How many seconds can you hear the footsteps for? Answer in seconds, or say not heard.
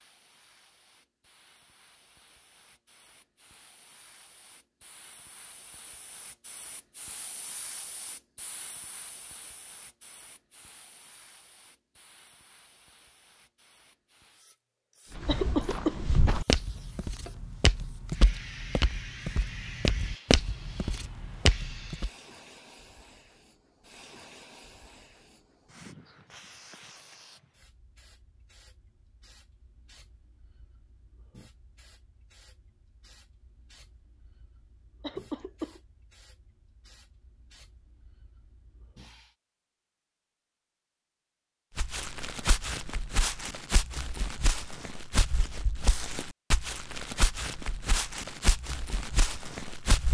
15 s.